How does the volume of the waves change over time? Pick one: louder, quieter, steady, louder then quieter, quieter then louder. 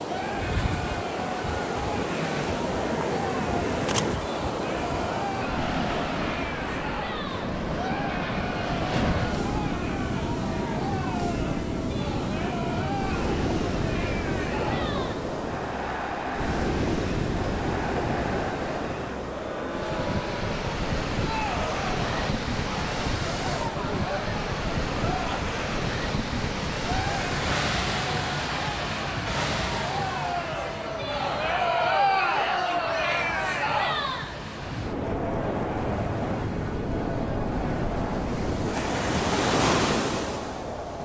steady.